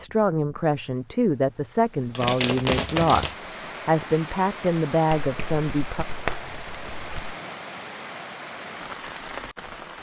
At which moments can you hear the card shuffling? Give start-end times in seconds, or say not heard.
2.1-3.4, 5.1-7.3.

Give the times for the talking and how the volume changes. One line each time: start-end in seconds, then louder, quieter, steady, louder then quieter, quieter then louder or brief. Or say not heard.
0.0-6.0 steady.